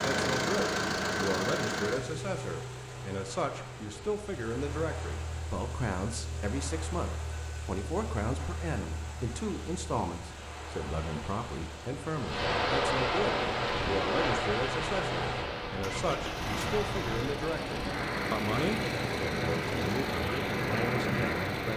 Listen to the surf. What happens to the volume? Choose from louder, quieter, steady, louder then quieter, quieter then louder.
louder.